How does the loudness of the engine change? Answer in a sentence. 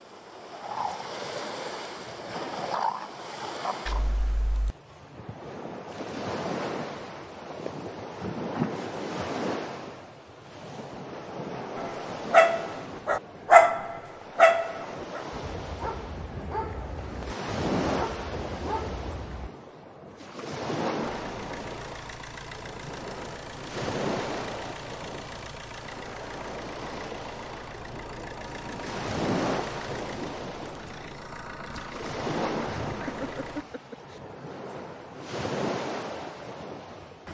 The loudness of the engine stays about the same.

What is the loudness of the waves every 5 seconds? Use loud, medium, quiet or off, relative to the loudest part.
loud, loud, medium, loud, loud, loud, loud, loud.